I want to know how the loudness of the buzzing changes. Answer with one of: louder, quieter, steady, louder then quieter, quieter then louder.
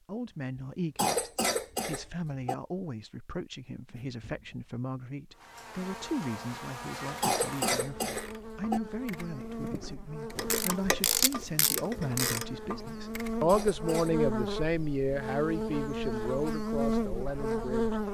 louder.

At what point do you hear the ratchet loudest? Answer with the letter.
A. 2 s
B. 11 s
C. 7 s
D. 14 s
B.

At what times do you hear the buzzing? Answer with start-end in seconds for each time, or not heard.
5.3-18.0.